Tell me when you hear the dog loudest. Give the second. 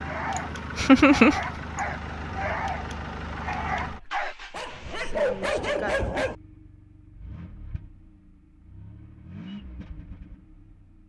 5 s.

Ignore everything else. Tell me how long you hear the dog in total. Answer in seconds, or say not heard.
6 s.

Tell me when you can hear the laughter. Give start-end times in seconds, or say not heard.
0.3-1.4.